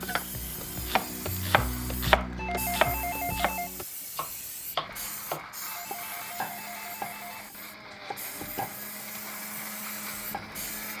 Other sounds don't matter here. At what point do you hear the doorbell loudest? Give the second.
3 s.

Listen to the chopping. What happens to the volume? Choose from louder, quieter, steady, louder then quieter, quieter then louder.
quieter.